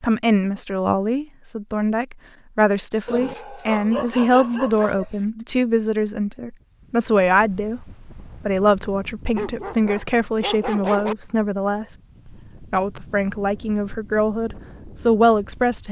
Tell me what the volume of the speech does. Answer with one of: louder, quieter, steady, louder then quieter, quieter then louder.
steady.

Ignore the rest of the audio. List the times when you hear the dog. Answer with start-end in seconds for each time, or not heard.
3.0-5.0, 9.3-11.2.